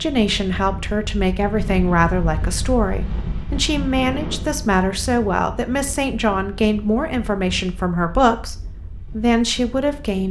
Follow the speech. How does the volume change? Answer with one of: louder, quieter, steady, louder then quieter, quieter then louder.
steady.